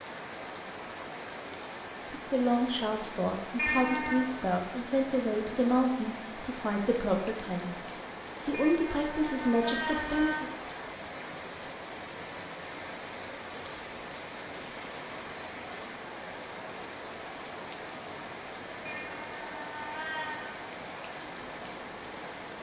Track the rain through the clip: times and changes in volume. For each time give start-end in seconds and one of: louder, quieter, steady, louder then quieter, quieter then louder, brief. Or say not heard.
0.0-22.5 steady.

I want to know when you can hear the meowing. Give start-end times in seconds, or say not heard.
3.5-4.3, 8.5-10.4, 18.9-20.6.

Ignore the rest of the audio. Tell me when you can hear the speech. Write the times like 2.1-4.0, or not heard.
2.1-10.5.